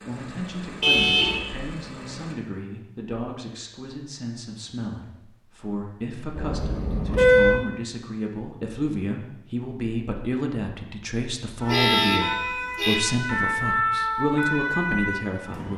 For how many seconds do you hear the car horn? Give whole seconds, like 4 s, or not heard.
3 s.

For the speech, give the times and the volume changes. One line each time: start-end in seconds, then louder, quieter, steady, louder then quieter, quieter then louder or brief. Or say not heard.
0.1-15.7 louder.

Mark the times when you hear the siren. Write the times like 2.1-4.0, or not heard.
11.6-15.7.